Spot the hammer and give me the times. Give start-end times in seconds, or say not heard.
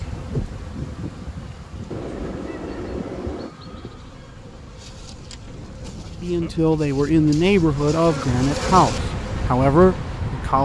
1.9-3.5.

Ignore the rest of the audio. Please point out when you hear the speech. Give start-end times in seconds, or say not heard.
6.2-10.6.